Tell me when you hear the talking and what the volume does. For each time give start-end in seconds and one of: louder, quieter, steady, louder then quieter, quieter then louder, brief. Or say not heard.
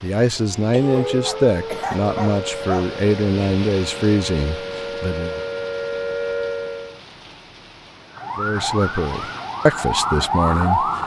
0.0-5.4 steady
8.3-11.0 brief.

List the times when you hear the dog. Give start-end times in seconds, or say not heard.
1.2-2.9.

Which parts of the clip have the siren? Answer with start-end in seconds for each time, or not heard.
0.3-7.0, 8.2-11.0.